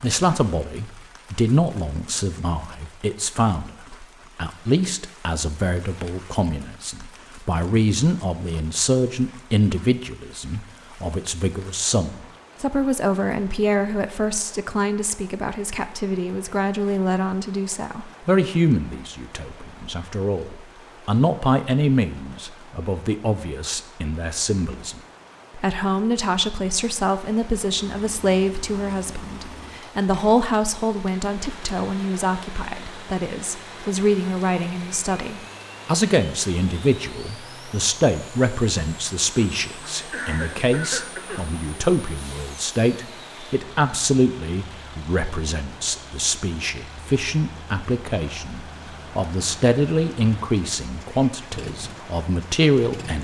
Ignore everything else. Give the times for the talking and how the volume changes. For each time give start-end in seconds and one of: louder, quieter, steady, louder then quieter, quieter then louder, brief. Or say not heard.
0.0-53.1 steady.